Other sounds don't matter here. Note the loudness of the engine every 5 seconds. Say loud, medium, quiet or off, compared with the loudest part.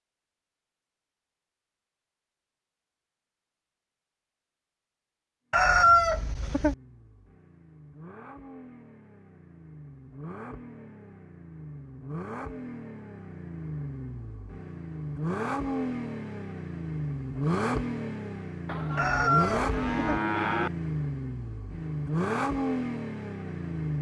off, quiet, medium, loud, loud.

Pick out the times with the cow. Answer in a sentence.
The cow can be heard from 18.6 to 20.7 s.